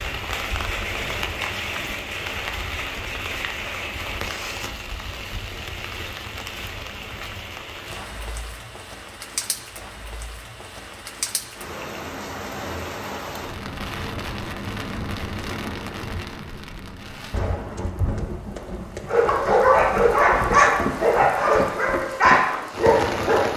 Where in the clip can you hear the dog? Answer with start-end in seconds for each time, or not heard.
19.1-23.5.